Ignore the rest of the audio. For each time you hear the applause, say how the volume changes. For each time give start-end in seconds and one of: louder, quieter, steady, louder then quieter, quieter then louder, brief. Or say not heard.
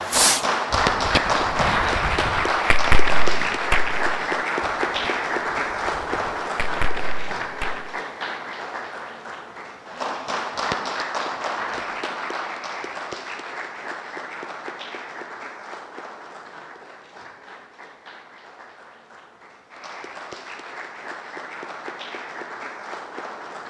0.0-23.6 quieter.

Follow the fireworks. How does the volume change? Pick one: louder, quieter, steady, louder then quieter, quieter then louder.
quieter then louder.